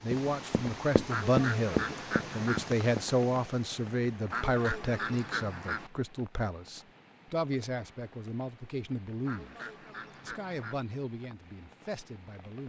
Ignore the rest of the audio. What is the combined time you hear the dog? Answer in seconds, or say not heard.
not heard.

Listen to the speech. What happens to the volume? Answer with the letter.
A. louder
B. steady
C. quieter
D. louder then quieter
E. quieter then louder
C.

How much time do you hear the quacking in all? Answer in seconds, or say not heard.
5 s.